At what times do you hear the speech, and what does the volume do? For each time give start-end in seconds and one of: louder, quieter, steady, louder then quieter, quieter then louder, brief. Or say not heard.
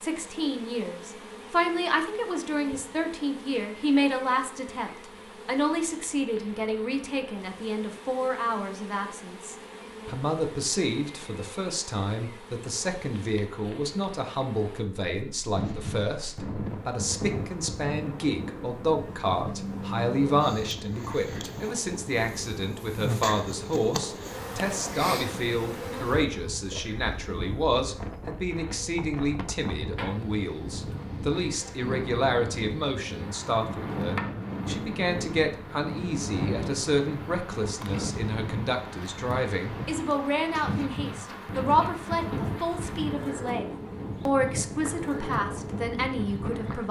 0.0-46.8 steady.